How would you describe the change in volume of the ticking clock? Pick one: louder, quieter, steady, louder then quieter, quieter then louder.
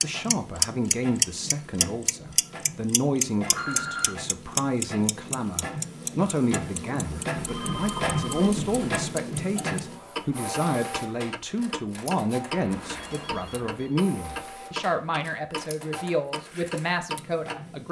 quieter.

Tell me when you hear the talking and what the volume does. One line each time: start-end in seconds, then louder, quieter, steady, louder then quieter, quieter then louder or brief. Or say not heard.
0.0-17.8 steady.